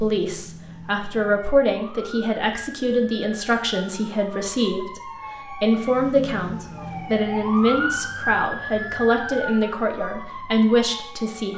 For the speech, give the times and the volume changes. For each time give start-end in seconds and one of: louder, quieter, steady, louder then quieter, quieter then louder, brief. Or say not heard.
0.0-11.5 steady.